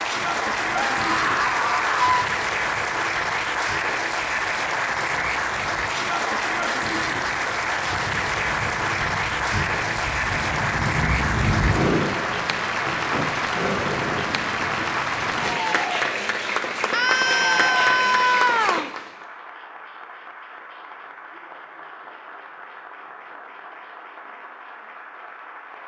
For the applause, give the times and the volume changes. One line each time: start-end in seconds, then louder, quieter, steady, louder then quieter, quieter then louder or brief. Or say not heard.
0.0-25.8 quieter.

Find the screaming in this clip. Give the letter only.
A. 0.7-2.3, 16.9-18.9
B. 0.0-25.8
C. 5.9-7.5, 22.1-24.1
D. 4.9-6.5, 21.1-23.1
A.